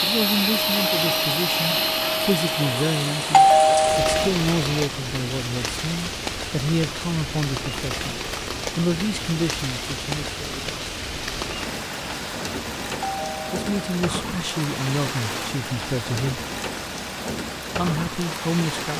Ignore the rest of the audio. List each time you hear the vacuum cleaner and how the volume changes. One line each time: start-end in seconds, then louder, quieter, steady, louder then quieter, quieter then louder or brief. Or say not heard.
0.0-4.9 quieter.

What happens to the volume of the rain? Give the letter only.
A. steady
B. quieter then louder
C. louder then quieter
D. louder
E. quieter
A.